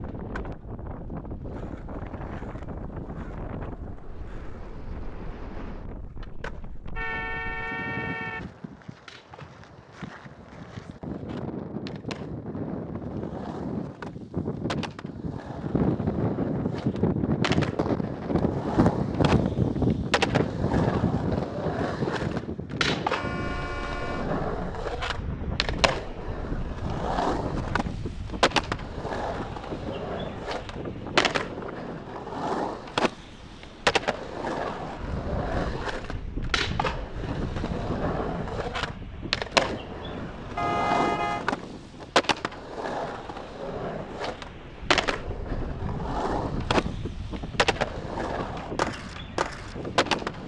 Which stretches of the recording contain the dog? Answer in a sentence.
You can't hear the dog here.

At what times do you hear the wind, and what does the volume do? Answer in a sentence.
You can hear the wind from 0.0 to 50.4 s, getting louder then quieter.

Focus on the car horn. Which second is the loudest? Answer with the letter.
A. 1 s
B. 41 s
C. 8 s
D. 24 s
B.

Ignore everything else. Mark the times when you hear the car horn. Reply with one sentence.
You can hear the car horn from 7.0 to 8.4 s, from 23.1 to 24.3 s and from 40.5 to 41.5 s.